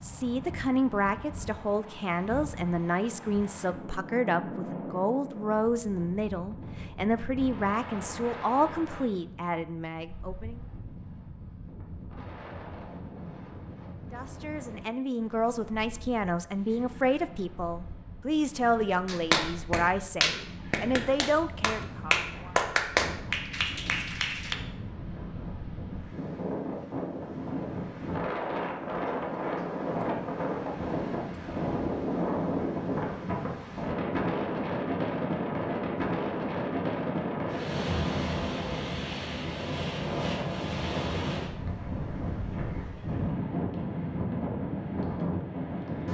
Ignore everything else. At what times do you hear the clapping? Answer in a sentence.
You can hear the clapping from 19.1 to 24.6 s.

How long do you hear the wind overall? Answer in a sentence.
The wind can be heard for 46 seconds in total.